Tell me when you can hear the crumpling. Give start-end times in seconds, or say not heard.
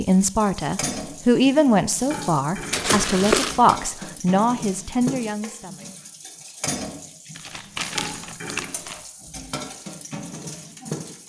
2.7-3.6, 7.3-8.9.